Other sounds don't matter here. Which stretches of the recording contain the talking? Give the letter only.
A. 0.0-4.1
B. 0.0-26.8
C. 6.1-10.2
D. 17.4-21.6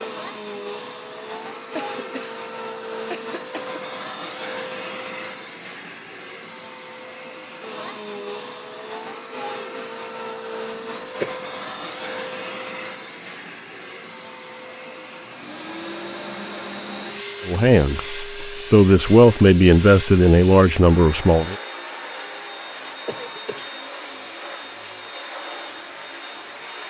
D.